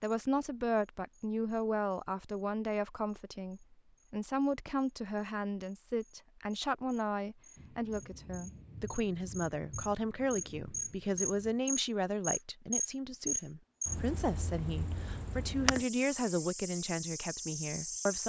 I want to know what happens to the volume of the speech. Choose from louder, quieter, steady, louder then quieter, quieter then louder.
steady.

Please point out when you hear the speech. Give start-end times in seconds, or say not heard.
0.0-18.2.